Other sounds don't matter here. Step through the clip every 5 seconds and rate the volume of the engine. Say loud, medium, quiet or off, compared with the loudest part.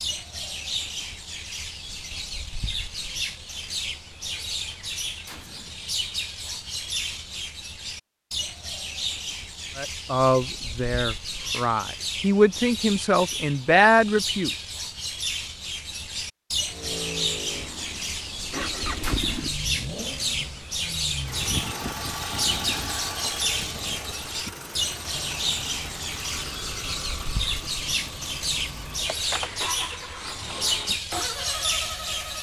off, off, off, loud, loud, loud, loud.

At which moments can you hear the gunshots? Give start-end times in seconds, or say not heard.
5.2-5.8, 19.0-19.5.